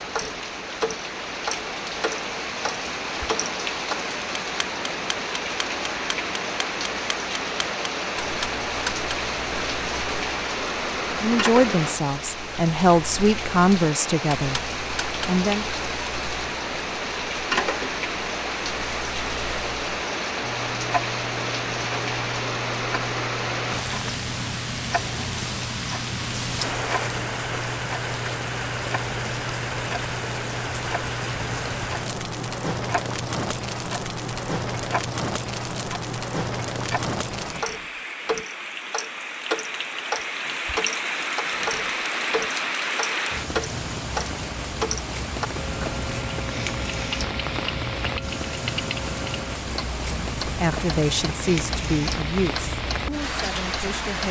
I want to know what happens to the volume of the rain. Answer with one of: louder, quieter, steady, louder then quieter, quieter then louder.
steady.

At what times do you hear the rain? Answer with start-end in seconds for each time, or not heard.
0.0-54.2.